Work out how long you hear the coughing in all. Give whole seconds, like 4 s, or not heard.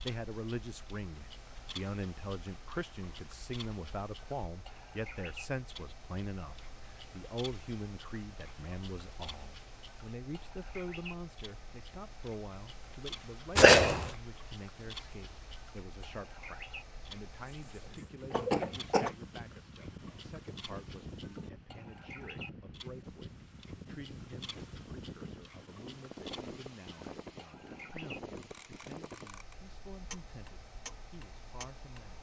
2 s.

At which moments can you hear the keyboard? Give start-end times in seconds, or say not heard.
not heard.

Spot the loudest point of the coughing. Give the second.
14 s.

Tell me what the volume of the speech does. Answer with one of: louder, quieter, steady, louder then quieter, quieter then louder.
quieter.